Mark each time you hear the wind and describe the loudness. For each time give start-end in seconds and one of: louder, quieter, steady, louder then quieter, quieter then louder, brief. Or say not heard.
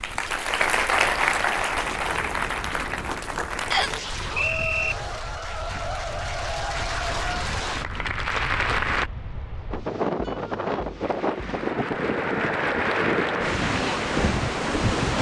0.0-15.1 louder.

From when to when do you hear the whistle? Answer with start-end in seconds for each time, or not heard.
3.7-5.0.